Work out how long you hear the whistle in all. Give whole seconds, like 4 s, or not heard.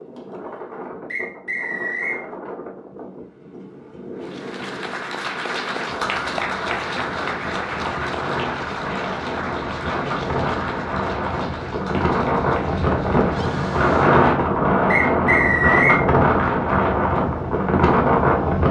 2 s.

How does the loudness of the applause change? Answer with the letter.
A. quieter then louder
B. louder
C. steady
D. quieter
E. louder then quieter
D.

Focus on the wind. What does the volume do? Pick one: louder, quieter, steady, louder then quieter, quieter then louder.
louder.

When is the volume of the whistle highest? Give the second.
16 s.